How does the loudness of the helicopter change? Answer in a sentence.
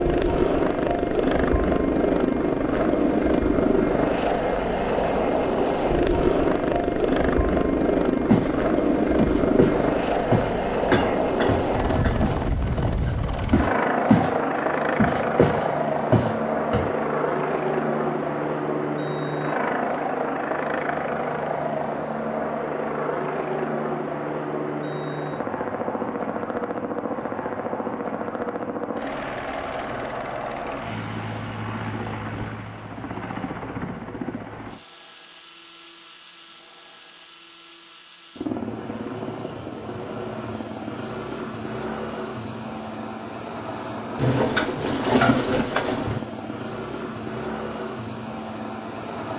The loudness of the helicopter goes down.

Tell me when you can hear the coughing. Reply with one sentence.
You can hear the coughing from 10.9 to 12.2 s.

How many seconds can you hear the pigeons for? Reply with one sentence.
The pigeons can be heard for 2 seconds in total.